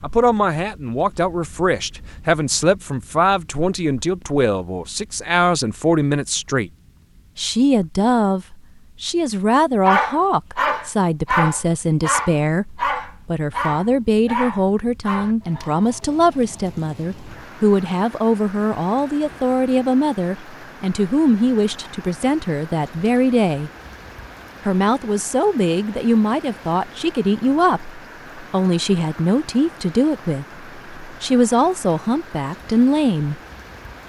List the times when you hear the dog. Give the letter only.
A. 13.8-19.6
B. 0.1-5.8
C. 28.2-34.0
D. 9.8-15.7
D.